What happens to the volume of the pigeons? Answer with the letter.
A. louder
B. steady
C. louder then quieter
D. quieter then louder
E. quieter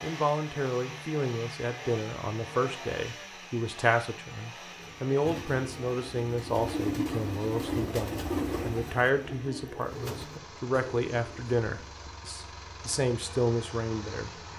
C.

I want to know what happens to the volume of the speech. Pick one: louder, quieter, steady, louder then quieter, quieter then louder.
steady.